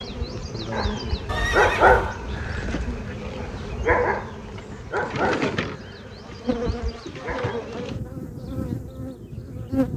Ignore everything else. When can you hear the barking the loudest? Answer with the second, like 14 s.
2 s.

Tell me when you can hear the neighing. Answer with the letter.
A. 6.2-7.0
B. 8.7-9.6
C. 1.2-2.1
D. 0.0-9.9
C.